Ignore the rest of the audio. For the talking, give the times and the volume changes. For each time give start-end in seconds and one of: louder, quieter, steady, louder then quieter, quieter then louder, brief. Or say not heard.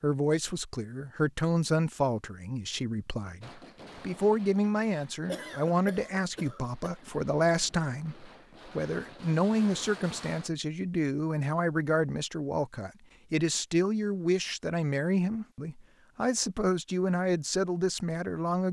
0.0-18.6 steady.